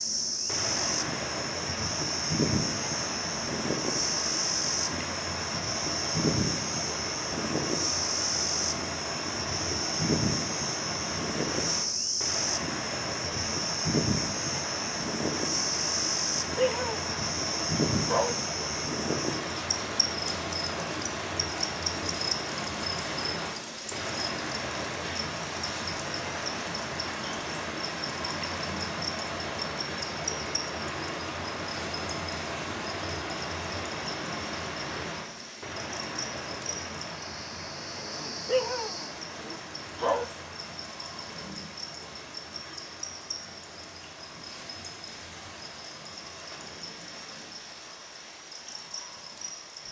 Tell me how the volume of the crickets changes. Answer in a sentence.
The loudness of the crickets goes down.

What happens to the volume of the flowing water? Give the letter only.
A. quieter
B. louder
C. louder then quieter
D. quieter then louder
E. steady
A.